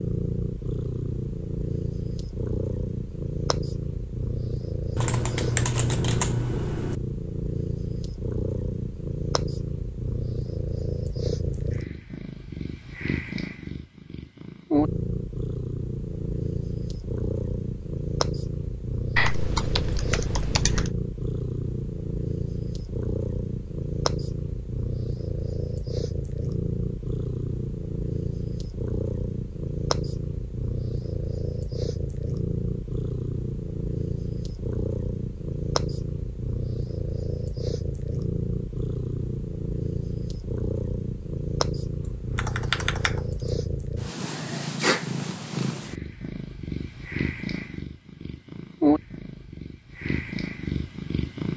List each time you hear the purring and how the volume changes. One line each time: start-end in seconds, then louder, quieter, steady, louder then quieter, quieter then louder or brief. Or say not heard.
0.0-51.5 steady.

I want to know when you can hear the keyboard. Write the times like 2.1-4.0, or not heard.
5.0-7.0, 19.1-20.9, 42.4-43.5.